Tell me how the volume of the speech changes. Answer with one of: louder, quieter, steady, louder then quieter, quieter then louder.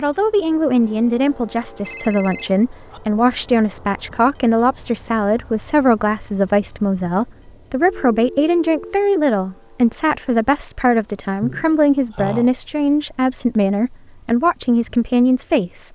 steady.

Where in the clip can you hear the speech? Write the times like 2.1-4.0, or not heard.
0.0-15.9.